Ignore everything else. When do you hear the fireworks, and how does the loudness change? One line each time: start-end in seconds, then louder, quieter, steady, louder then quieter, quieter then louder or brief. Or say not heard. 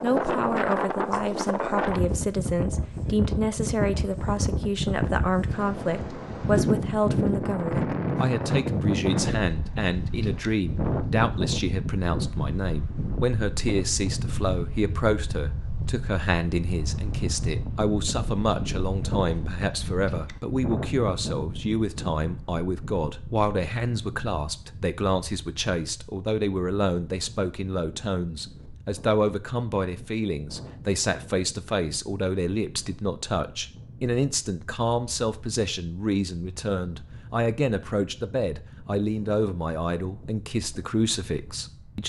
not heard.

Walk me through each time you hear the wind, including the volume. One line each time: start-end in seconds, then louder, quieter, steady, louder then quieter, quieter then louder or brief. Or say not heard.
0.0-42.0 quieter.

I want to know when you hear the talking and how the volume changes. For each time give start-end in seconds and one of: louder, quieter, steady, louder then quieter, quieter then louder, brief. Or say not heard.
0.0-42.0 steady.